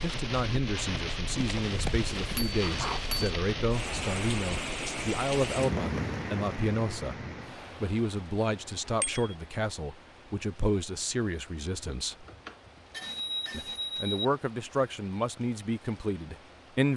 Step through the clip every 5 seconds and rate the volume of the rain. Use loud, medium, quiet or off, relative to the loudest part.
loud, loud, quiet, quiet.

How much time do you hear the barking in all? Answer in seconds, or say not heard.
2 s.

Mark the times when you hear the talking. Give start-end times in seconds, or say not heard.
0.0-7.2, 7.8-12.2, 13.5-16.9.